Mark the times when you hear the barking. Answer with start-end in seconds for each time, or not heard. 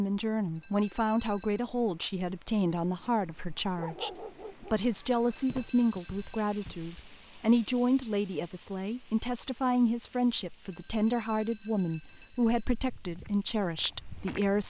3.8-4.8.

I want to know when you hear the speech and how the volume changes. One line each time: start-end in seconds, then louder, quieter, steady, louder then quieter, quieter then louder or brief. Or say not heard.
0.0-14.6 steady.